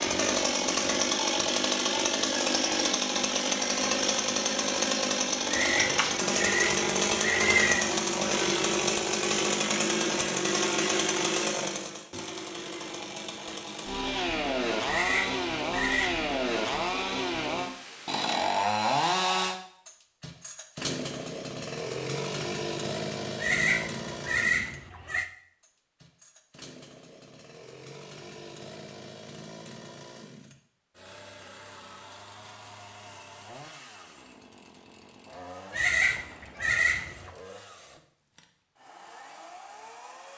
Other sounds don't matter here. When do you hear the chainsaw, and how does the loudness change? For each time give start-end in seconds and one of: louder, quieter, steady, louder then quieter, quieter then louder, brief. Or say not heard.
0.0-40.3 quieter.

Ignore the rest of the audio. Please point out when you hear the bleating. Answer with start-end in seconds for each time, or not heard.
5.5-7.9, 14.8-16.2, 23.4-25.2, 35.7-37.3.